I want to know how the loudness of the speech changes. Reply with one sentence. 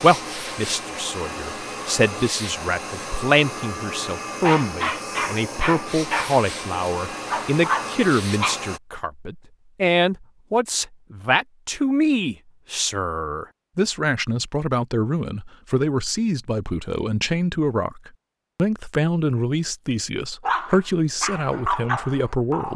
The volume of the speech stays about the same.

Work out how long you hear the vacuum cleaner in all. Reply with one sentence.
You can hear the vacuum cleaner for 9 seconds altogether.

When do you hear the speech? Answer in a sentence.
The speech can be heard from 0.0 to 22.7 s.